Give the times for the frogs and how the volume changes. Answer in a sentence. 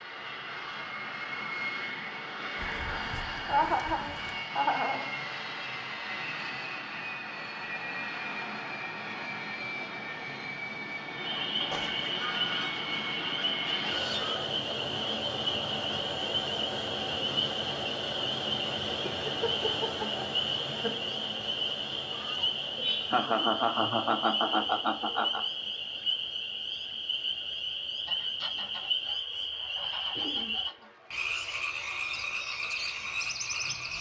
The frogs can be heard from 11.3 to 33.9 s, at a steady volume.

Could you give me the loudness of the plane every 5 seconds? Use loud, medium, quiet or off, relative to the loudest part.
loud, loud, loud, loud, medium, quiet, quiet.